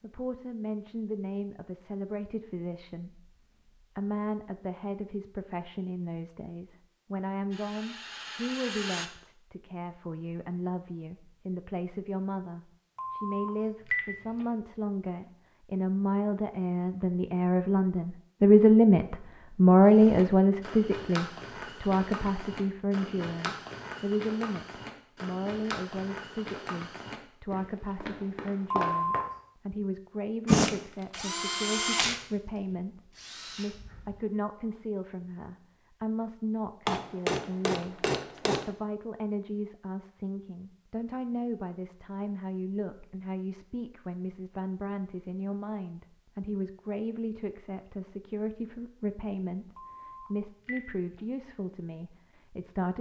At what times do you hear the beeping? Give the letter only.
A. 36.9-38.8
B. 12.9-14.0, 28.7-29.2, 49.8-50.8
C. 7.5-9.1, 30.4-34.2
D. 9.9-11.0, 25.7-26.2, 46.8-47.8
B.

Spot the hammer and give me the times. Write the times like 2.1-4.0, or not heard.
36.9-38.8.